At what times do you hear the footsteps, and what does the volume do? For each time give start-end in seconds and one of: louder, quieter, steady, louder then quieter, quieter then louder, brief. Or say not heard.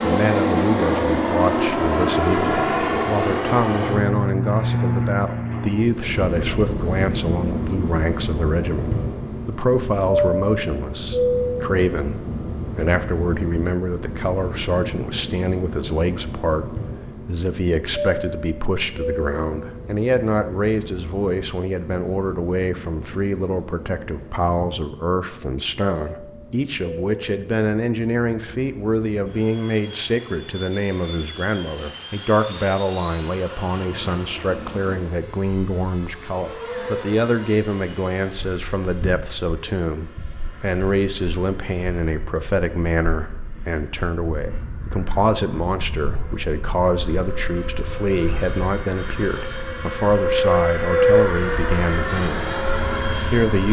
not heard.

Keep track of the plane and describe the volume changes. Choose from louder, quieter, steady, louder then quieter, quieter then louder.
quieter then louder.